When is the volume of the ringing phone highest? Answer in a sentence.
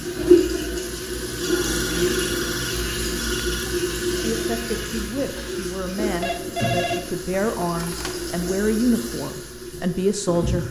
The volume of the ringing phone peaks at 7 seconds.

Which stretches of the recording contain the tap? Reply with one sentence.
You can hear the tap from 0.0 to 10.6 s.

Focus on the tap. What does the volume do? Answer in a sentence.
The volume of the tap goes down.